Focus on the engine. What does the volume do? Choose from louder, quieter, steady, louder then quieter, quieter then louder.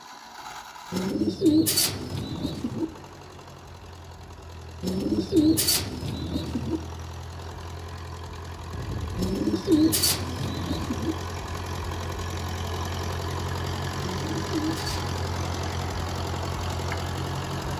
louder.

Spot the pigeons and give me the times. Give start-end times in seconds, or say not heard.
0.9-2.9, 4.8-6.8, 9.2-11.2, 14.0-15.5.